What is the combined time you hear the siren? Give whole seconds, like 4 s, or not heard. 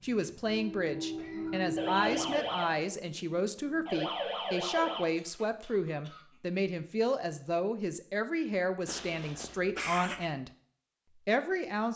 3 s.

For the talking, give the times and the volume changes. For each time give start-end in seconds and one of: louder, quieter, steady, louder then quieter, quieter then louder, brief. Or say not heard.
0.0-10.5 steady
11.2-11.9 brief.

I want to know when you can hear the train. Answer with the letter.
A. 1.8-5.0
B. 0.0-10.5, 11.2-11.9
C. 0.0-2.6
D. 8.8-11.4
C.